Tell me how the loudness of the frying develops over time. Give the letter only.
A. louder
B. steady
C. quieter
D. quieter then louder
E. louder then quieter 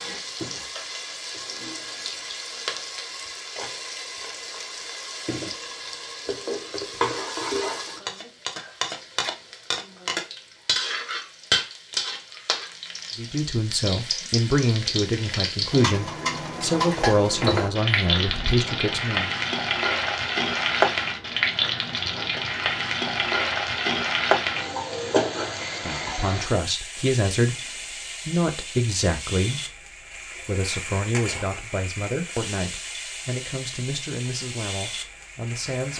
E.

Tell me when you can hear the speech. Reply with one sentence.
You can hear the speech from 13.2 to 19.3 s and from 25.7 to 35.9 s.